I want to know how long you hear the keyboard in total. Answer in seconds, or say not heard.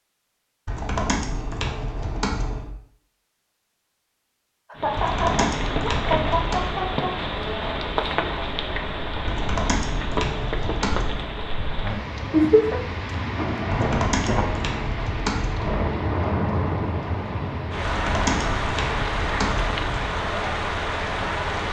10 s.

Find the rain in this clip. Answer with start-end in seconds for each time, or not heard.
4.8-21.6.